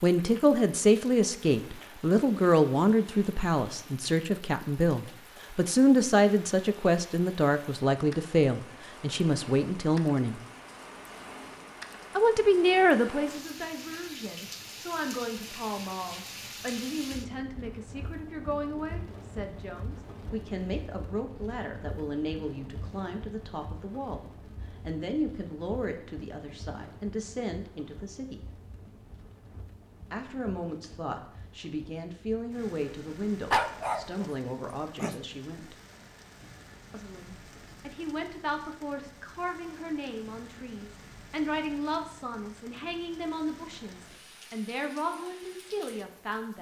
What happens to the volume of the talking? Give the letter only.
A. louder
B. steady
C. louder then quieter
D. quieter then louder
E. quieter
E.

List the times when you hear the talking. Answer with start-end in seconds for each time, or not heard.
0.0-10.4, 12.2-24.2, 24.8-28.4, 30.1-35.8, 36.9-46.5.